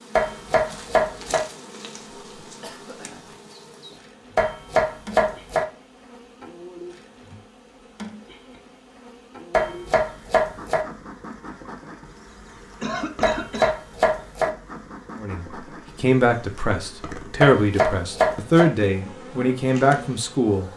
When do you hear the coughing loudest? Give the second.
13 s.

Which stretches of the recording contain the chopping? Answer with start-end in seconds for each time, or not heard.
0.1-1.4, 4.3-5.7, 9.5-10.8, 13.2-14.5, 17.4-18.7.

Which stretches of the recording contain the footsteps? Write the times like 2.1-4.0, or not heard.
not heard.